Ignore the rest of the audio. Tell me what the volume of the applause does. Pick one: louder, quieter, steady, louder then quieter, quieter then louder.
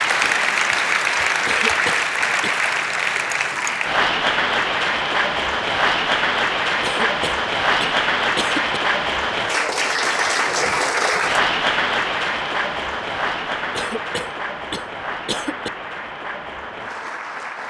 quieter.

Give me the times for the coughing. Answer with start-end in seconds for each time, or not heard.
1.4-2.5, 6.8-8.8, 13.7-15.7.